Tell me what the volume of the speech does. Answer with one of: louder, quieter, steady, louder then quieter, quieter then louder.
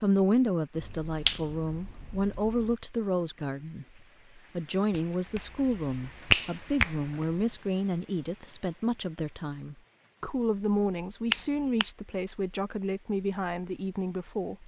steady.